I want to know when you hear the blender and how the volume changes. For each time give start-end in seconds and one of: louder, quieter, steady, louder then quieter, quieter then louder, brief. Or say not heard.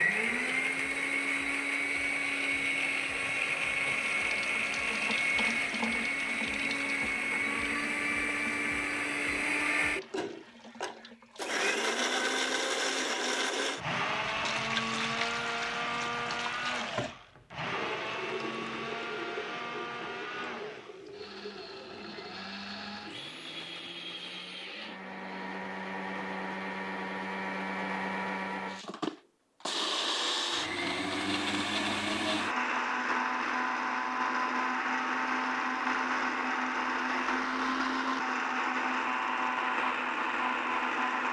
0.0-41.2 quieter then louder.